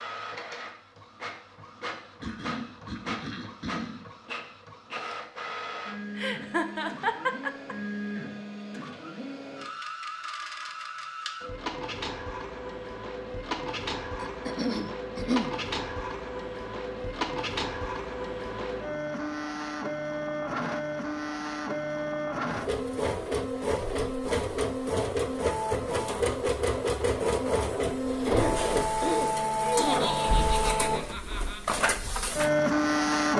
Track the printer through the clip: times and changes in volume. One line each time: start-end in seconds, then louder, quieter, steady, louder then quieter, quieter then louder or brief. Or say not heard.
0.0-33.3 louder.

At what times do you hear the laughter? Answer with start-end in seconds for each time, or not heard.
6.2-7.8, 29.6-31.6.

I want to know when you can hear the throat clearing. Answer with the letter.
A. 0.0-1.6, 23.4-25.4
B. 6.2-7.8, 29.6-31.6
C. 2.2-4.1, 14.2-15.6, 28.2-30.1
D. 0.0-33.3
C.